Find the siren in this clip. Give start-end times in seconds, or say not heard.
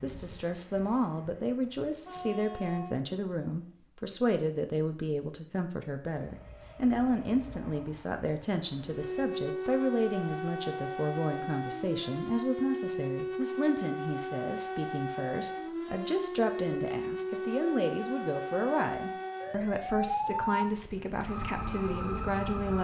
8.8-22.8.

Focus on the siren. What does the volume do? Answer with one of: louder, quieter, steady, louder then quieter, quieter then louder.
steady.